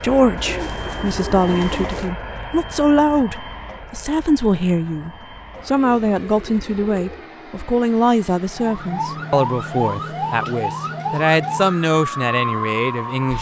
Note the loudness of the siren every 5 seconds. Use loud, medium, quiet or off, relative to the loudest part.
off, loud, loud.